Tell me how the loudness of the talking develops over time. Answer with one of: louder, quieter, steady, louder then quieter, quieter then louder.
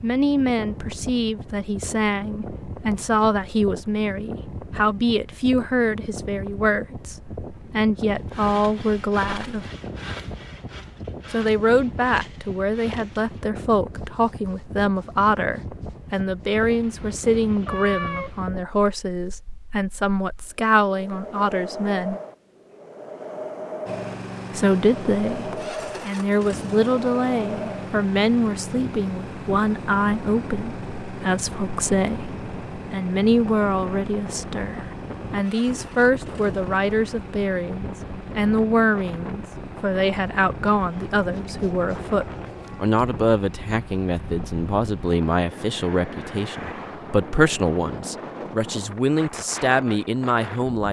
steady.